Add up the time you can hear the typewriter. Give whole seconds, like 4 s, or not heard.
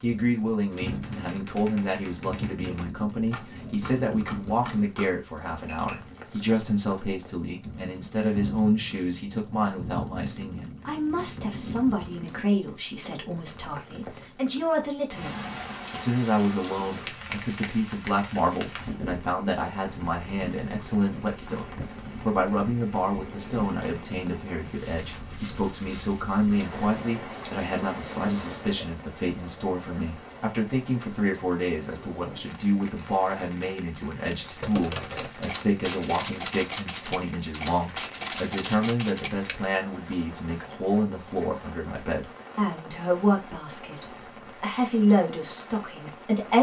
11 s.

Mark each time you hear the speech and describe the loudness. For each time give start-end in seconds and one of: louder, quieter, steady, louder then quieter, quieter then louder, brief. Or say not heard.
0.0-46.5 steady.